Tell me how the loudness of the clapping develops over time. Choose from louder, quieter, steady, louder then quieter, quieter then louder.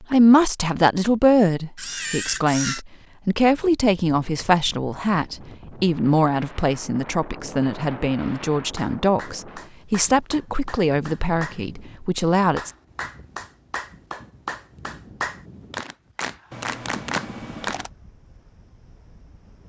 louder.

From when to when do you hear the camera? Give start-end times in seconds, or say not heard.
1.8-2.9, 16.5-17.9.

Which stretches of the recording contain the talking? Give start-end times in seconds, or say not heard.
0.0-12.7.